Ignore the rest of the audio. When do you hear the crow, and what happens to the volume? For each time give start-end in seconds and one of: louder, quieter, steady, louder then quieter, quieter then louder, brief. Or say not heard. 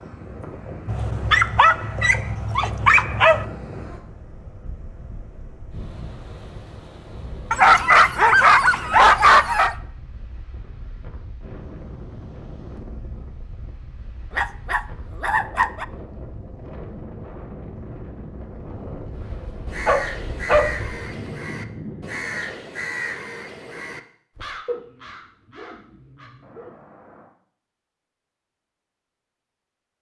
19.6-27.3 quieter.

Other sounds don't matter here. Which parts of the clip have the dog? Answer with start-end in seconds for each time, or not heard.
0.8-3.5, 7.5-9.8, 14.3-15.8, 19.9-20.8, 24.6-26.8.